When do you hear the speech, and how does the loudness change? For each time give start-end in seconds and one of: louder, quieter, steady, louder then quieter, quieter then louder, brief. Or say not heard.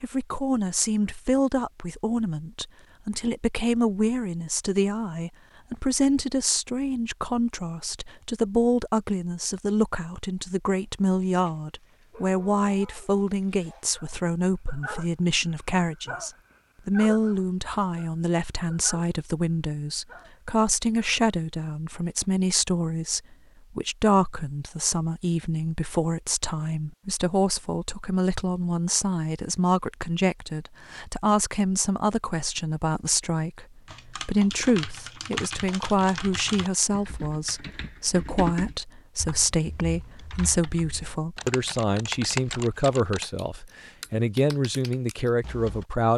0.0-46.1 steady.